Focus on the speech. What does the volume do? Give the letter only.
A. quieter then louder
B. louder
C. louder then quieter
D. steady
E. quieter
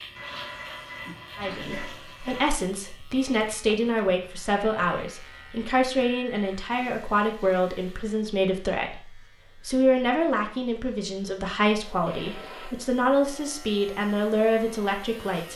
D.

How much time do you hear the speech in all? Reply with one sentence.
The speech can be heard for 14 seconds in total.